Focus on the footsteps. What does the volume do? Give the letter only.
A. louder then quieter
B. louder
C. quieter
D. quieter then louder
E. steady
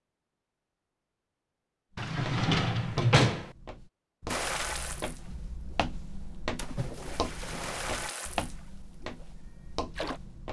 A.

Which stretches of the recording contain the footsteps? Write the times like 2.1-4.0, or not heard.
2.0-10.4.